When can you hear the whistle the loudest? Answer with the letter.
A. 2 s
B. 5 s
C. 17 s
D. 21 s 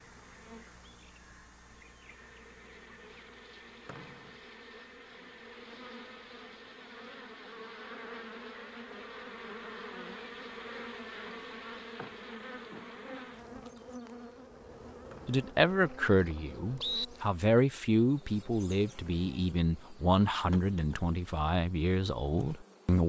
C.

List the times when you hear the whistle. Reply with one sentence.
You can hear the whistle from 3.9 to 4.3 s and from 15.1 to 17.1 s.